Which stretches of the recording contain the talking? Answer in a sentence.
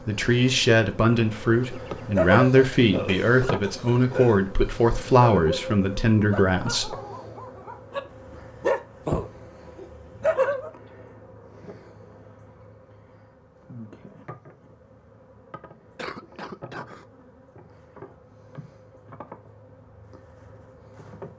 You can hear the talking from 0.1 to 7.0 s.